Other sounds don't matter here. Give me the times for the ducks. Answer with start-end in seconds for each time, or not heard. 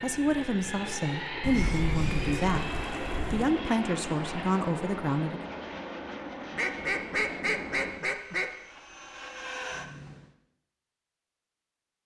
1.4-3.5, 6.5-8.5.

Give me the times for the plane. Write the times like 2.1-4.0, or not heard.
0.0-10.3.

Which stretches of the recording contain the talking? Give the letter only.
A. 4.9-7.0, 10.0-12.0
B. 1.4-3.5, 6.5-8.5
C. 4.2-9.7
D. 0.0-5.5
D.